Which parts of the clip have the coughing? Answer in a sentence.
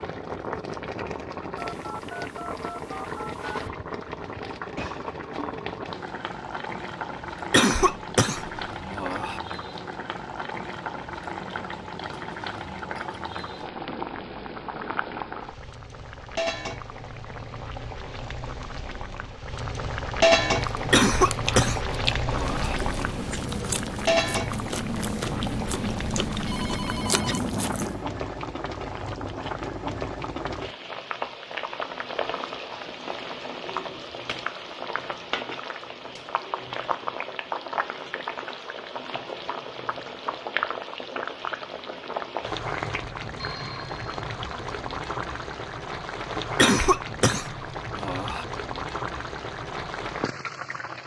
You can hear the coughing from 7.5 to 9.4 s, from 20.9 to 22.8 s and from 46.5 to 48.5 s.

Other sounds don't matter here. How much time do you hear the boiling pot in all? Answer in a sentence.
You can hear the boiling pot for 51 seconds altogether.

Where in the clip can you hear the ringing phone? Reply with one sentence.
You can hear the ringing phone from 1.6 to 3.7 s, from 26.4 to 27.4 s and from 43.4 to 44.1 s.